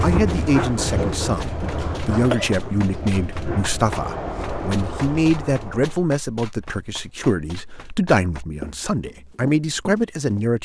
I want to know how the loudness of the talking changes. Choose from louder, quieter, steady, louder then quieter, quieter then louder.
steady.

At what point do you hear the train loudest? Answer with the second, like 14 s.
1 s.